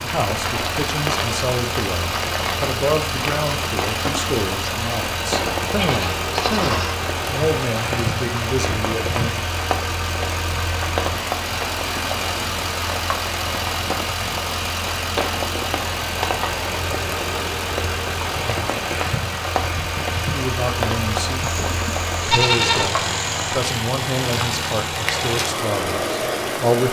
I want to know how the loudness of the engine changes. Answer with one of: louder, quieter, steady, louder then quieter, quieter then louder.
steady.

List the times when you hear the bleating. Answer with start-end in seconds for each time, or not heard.
5.4-7.0, 21.4-23.4.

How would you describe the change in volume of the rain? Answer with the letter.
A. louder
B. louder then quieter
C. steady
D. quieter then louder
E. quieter
C.